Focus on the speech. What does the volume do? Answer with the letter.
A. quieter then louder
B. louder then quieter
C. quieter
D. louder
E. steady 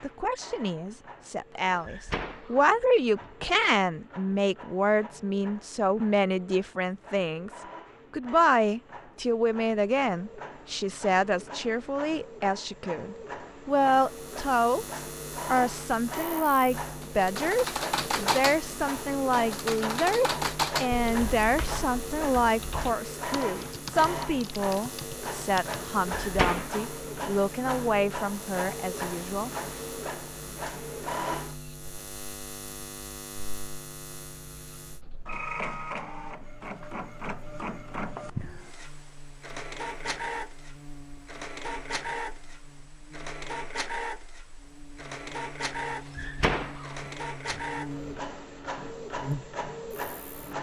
E.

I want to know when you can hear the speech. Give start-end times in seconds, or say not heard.
0.0-29.5.